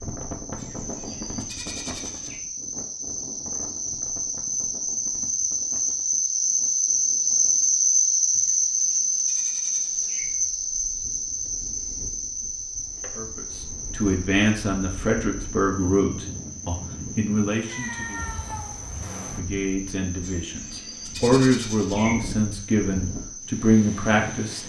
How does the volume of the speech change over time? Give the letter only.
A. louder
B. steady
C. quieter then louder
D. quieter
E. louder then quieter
C.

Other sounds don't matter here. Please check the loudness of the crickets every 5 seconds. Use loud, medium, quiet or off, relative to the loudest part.
medium, loud, medium, quiet, quiet.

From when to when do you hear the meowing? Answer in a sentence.
You can hear the meowing from 17.6 to 18.8 s.